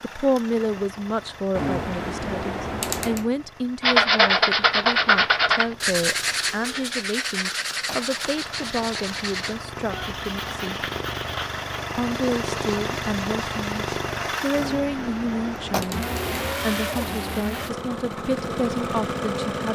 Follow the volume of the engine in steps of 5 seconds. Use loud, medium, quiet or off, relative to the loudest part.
quiet, medium, loud, loud.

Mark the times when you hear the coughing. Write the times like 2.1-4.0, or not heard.
not heard.